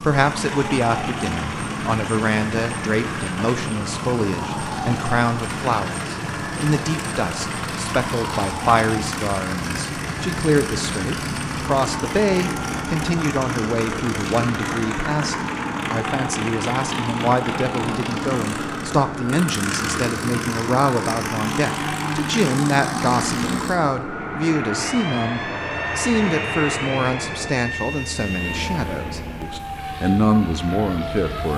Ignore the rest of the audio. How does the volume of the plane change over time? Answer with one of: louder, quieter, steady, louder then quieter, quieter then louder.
steady.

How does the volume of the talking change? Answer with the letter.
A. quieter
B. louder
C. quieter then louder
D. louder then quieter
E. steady
E.